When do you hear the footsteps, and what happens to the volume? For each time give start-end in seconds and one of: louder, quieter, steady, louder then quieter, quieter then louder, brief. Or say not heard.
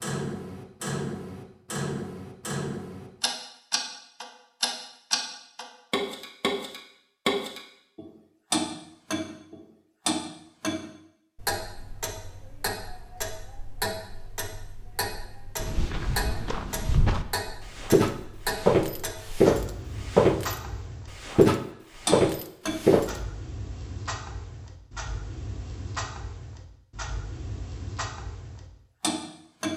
15.6-20.6 louder
21.2-23.1 brief.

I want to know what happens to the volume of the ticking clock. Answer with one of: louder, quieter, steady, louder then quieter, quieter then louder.
quieter.